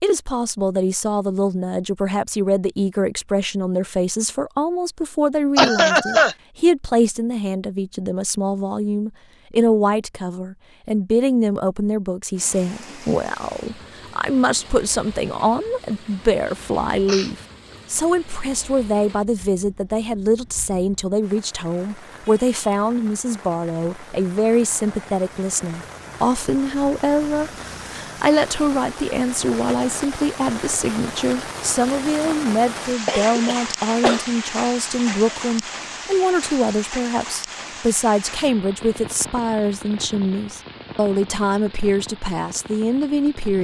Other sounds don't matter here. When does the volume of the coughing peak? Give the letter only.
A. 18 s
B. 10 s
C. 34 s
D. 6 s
D.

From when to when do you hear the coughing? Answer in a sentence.
You can hear the coughing from 5.5 to 6.3 s, from 17.1 to 17.8 s and from 33.0 to 34.2 s.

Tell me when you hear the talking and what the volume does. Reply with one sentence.
The talking can be heard from 0.0 to 43.6 s, at a steady volume.